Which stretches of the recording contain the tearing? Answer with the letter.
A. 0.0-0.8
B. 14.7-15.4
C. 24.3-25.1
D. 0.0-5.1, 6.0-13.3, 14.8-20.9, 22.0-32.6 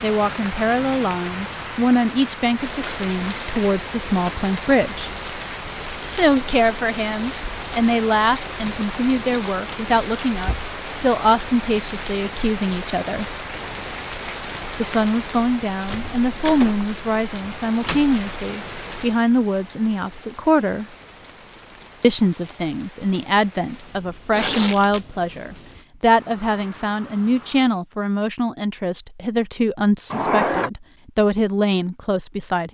C.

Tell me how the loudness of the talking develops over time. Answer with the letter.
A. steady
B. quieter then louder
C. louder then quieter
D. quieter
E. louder
A.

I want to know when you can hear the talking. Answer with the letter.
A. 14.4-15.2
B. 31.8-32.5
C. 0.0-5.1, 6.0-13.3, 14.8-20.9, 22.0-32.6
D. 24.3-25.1
C.